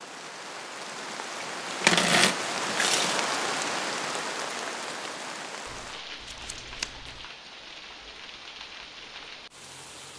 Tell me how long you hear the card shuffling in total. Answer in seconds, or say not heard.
3 s.